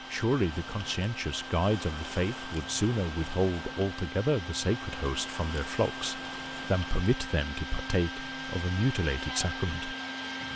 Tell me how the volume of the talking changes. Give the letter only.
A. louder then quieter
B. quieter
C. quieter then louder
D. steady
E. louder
D.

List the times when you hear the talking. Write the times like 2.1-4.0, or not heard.
0.1-9.9.